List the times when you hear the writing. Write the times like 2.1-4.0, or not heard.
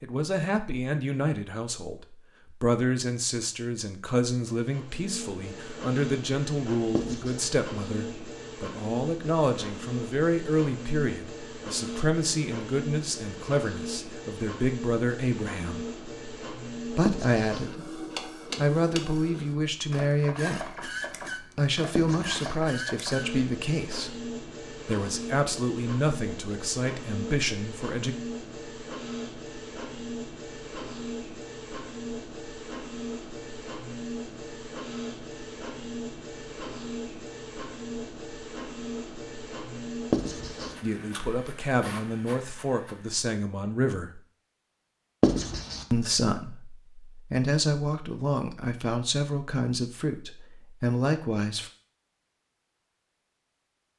7.0-7.5, 17.1-17.6, 21.9-22.5, 40.1-40.8, 45.2-45.9.